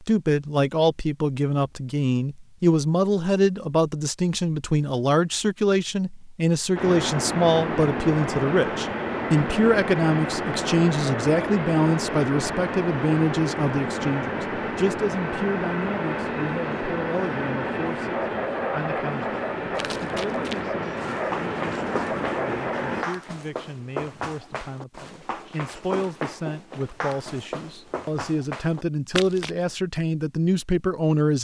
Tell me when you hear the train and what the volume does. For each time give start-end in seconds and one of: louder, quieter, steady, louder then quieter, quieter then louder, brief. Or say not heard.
6.8-23.1 steady.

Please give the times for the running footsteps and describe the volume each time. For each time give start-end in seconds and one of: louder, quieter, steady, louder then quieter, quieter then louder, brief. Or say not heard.
19.8-29.5 steady.